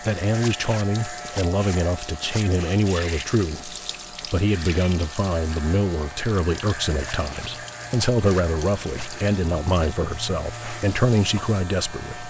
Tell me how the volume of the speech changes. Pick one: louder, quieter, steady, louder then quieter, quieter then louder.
steady.